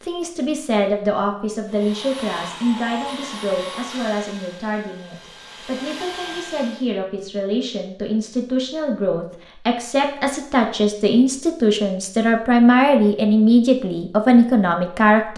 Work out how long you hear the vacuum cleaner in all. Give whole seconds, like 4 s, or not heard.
5 s.